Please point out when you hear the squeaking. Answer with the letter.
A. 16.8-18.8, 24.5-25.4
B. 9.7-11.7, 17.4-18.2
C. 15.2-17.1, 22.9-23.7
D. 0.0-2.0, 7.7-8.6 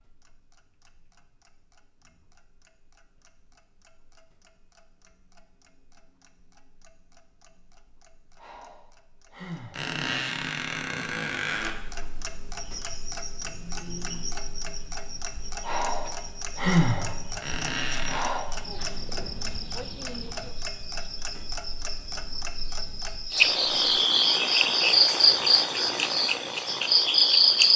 B.